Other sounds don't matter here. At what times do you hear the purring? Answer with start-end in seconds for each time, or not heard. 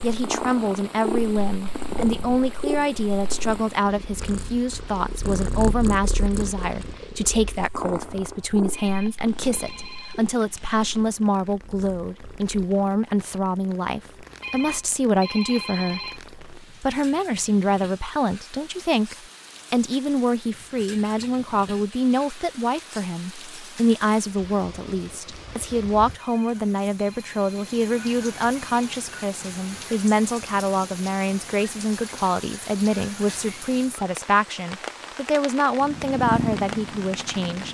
0.0-12.7, 35.8-37.6.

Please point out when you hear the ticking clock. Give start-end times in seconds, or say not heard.
not heard.